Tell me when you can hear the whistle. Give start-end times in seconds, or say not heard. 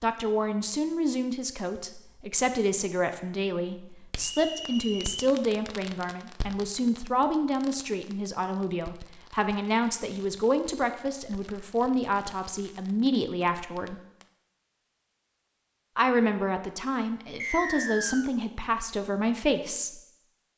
4.2-5.2, 17.4-18.3.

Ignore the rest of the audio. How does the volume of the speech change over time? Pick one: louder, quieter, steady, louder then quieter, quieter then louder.
steady.